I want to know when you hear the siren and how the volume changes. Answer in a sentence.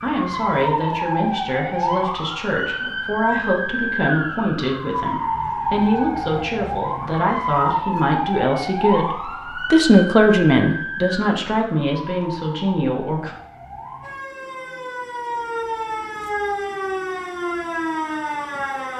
You can hear the siren from 0.0 to 18.9 s, getting quieter then louder.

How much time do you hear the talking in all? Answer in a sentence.
The talking can be heard for 13 seconds in total.